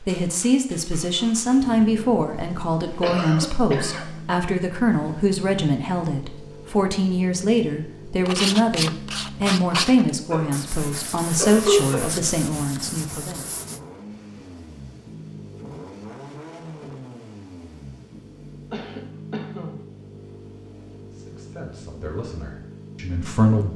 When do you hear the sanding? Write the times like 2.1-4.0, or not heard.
8.2-13.8.